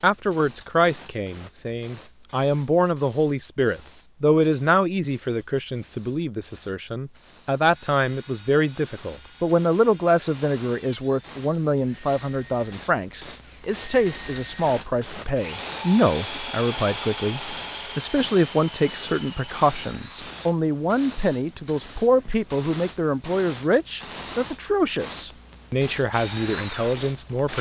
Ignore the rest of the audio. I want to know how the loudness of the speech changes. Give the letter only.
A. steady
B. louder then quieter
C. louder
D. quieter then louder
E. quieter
A.